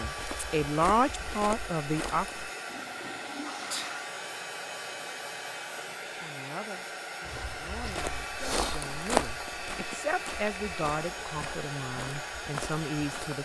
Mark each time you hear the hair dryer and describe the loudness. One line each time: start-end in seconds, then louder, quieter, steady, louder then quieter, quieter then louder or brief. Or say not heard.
0.0-13.4 steady.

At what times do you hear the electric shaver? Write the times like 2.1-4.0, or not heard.
not heard.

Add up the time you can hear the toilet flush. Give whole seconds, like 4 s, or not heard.
2 s.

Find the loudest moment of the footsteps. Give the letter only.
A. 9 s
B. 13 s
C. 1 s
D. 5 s
A.